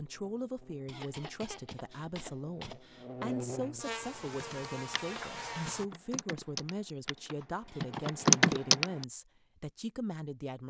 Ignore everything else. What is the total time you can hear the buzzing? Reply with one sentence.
The buzzing can be heard for 6 seconds in total.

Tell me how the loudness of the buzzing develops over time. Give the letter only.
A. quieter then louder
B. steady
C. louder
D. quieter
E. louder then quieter
C.